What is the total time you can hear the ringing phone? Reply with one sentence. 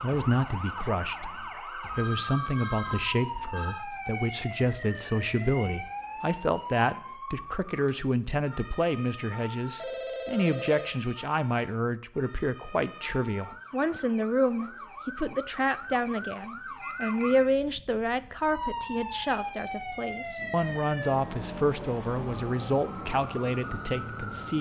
You can hear the ringing phone for 4 seconds altogether.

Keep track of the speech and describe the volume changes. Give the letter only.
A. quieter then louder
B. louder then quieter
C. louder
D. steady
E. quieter
D.